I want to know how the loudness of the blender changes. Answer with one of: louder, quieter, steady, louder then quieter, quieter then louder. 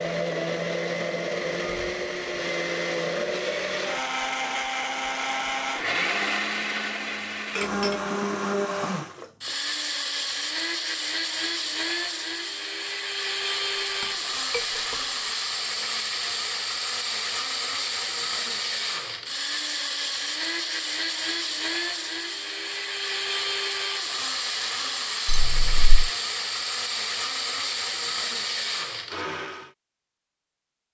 steady.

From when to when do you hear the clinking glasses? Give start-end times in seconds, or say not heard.
7.5-8.1, 14.0-15.0, 25.2-26.1.